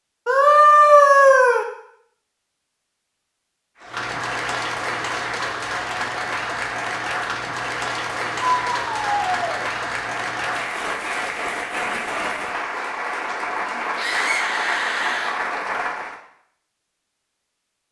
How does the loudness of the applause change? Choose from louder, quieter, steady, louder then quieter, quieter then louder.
steady.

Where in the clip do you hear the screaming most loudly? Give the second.
1 s.